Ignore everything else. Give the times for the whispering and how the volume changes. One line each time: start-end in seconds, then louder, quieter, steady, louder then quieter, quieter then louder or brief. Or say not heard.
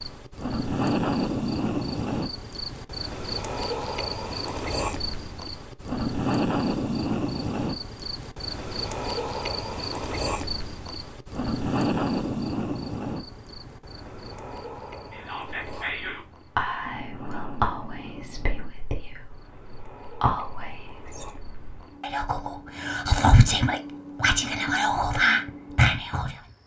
15.1-26.4 louder.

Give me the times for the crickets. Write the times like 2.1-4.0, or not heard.
0.0-26.6.